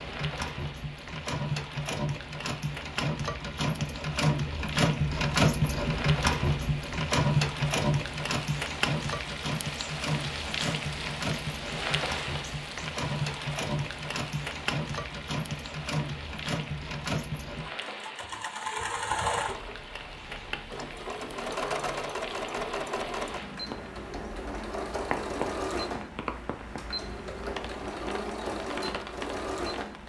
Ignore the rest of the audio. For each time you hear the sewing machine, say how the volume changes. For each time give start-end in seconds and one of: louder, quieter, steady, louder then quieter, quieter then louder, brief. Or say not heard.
0.0-30.0 quieter.